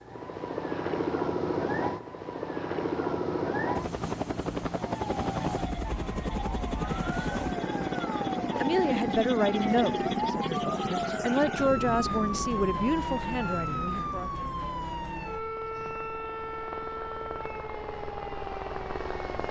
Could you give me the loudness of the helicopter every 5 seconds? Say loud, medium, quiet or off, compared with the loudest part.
loud, loud, medium, medium.